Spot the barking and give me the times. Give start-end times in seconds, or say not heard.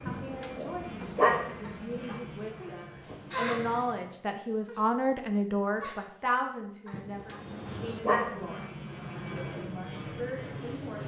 0.1-1.4, 6.9-8.3.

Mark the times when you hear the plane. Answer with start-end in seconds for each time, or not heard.
0.0-4.2, 7.1-11.0.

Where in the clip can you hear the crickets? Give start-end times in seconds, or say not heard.
0.0-7.5.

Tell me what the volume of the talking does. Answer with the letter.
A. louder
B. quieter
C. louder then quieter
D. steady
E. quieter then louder
C.